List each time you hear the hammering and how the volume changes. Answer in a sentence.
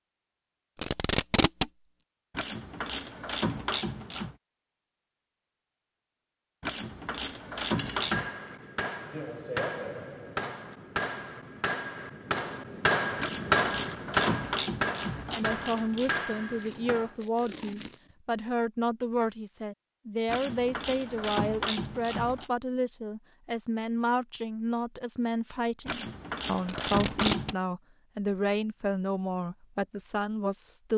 You can hear the hammering from 7.6 to 17.1 s, getting louder then quieter.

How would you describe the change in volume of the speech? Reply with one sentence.
The loudness of the speech stays about the same.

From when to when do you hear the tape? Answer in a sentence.
The tape can be heard from 0.8 to 1.7 s, from 16.6 to 18.1 s and from 26.6 to 27.6 s.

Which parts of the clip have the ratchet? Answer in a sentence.
The ratchet can be heard from 2.4 to 4.3 s, from 6.6 to 8.2 s, from 13.2 to 16.1 s, from 20.3 to 22.5 s and from 25.9 to 27.6 s.